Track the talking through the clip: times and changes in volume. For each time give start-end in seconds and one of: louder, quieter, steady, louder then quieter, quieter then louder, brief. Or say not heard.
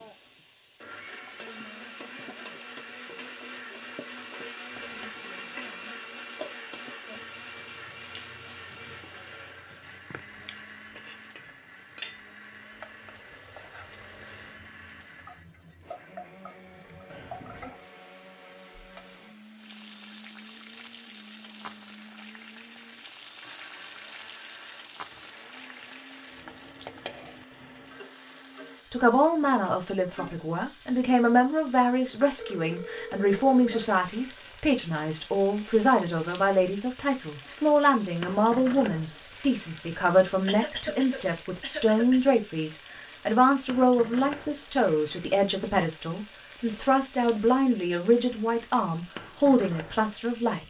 28.9-50.6 steady.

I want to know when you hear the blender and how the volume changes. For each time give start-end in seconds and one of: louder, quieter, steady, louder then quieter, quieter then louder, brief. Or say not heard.
0.0-28.9 quieter.